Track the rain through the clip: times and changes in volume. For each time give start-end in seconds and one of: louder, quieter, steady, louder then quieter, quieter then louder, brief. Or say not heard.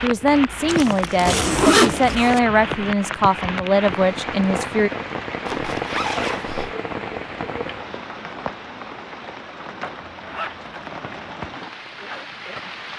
0.0-12.9 quieter.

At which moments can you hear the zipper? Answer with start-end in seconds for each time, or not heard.
0.7-2.4, 5.5-6.8, 9.8-11.3.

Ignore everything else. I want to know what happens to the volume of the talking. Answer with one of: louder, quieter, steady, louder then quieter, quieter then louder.
steady.